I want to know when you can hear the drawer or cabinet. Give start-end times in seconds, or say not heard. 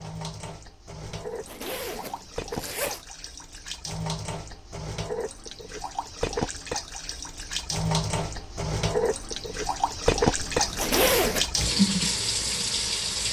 not heard.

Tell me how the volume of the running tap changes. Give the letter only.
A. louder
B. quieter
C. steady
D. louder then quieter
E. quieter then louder
A.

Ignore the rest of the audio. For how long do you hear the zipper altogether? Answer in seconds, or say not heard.
3 s.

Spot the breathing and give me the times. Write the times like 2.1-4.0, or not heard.
not heard.